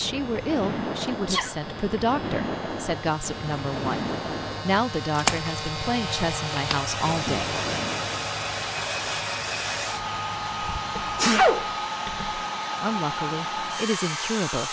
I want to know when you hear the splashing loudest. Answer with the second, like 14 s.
5 s.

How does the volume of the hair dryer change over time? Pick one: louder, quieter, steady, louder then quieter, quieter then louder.
louder.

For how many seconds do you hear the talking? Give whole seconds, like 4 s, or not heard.
9 s.